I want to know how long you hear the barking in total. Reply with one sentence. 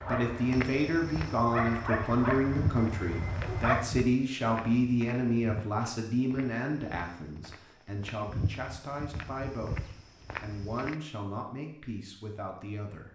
The barking can be heard for 4 seconds in total.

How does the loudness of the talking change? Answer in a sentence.
The volume of the talking goes down.